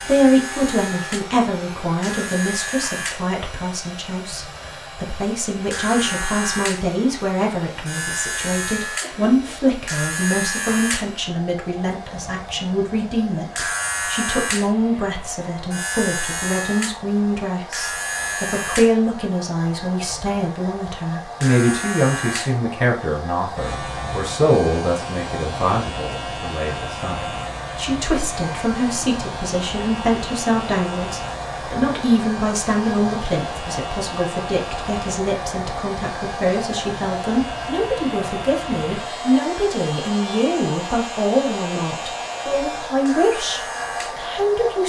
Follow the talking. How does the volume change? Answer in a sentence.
The loudness of the talking stays about the same.